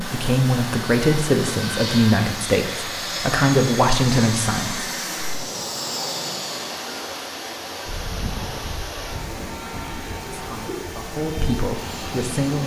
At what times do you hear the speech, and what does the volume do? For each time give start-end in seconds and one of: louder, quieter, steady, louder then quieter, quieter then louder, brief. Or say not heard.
0.0-4.8 steady
10.3-12.6 brief.